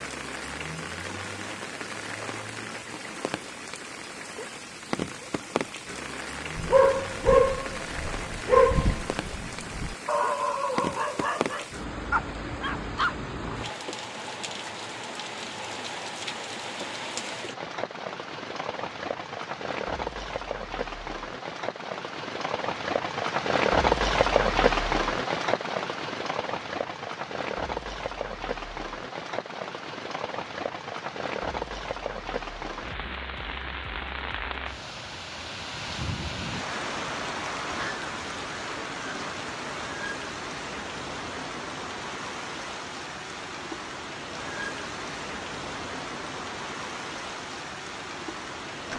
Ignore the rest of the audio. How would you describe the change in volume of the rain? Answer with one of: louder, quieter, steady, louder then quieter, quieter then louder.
louder then quieter.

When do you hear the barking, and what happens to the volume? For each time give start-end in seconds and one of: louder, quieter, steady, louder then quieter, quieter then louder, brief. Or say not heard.
6.5-13.2 quieter.